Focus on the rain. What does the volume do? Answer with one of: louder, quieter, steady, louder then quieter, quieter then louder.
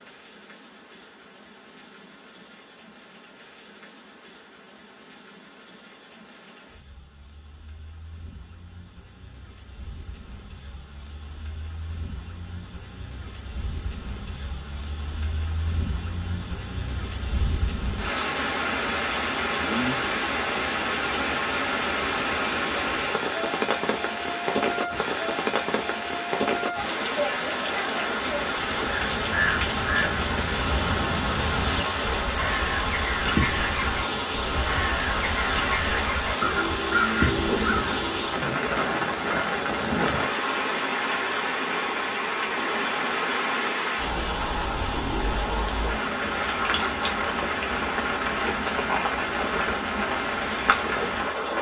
louder.